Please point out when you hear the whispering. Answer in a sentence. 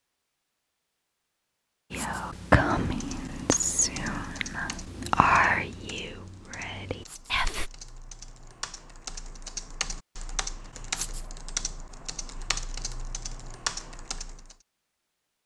The whispering can be heard from 1.9 to 7.7 s.